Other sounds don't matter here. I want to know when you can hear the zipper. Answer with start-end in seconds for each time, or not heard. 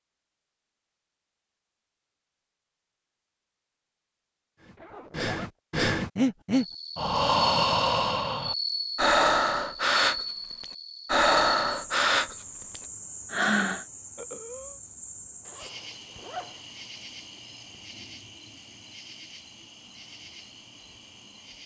4.8-5.5, 15.4-16.6.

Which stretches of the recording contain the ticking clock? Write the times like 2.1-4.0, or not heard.
not heard.